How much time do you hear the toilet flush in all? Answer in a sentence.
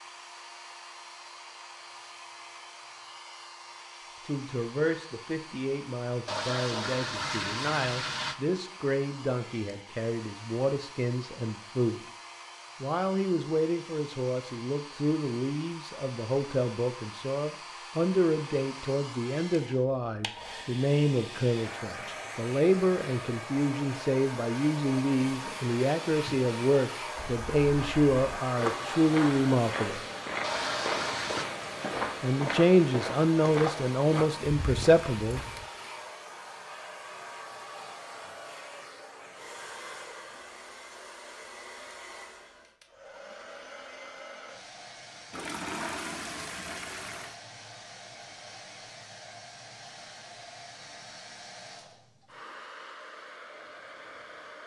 The toilet flush can be heard for 5 seconds in total.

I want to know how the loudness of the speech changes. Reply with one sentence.
The loudness of the speech goes up.